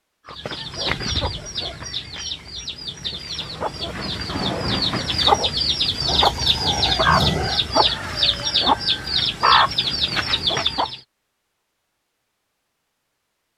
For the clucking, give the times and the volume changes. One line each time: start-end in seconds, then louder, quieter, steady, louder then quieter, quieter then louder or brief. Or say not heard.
0.2-11.0 louder.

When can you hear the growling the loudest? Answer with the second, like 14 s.
7 s.